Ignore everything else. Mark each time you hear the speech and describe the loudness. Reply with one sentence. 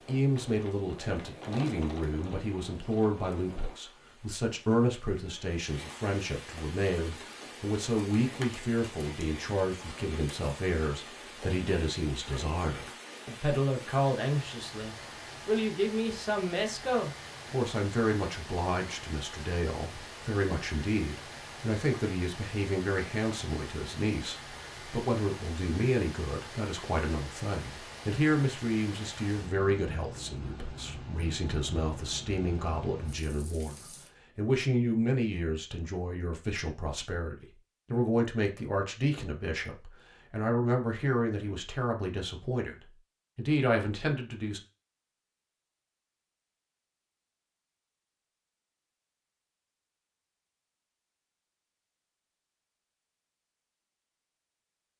You can hear the speech from 0.1 to 44.6 s, at a steady volume.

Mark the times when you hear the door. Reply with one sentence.
You can't hear the door here.